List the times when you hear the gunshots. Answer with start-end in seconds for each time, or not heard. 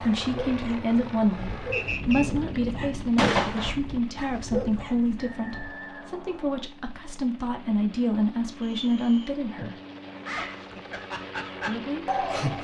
3.1-3.8.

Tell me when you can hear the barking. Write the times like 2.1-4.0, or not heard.
0.0-5.8, 10.2-12.5.